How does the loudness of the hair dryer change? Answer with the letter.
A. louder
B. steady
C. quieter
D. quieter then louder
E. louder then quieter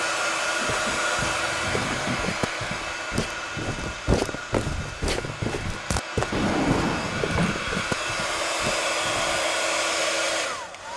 D.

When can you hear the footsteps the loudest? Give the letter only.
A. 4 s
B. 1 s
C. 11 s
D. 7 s
A.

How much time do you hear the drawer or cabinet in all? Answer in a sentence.
You can hear the drawer or cabinet for 3 seconds altogether.